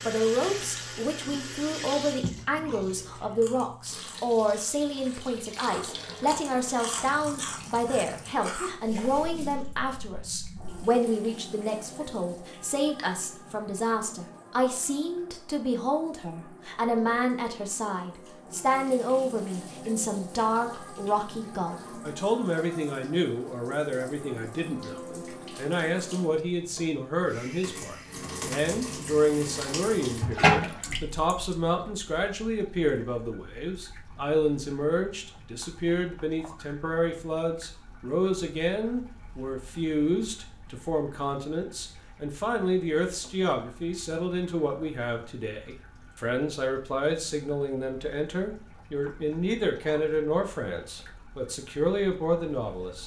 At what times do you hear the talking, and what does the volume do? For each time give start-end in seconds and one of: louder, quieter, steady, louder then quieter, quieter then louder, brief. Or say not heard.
0.1-53.0 steady.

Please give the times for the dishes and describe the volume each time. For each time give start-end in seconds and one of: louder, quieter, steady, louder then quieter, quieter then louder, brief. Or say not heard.
not heard.